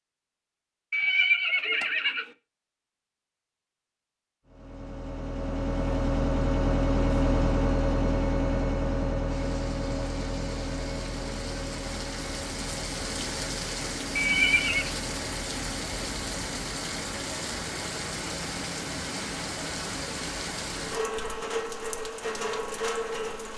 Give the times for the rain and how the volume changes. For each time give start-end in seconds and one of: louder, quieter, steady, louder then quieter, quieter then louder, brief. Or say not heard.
9.2-23.5 louder.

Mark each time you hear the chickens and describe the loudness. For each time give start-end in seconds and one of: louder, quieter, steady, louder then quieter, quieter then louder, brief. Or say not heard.
not heard.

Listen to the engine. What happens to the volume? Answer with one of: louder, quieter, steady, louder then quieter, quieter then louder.
quieter.